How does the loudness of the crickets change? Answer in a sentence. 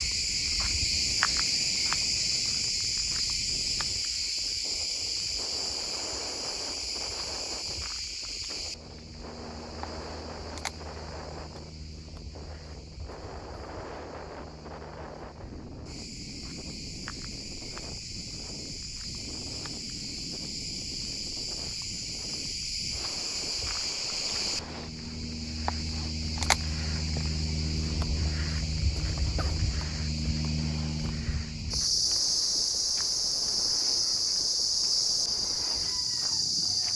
The volume of the crickets goes down, then up.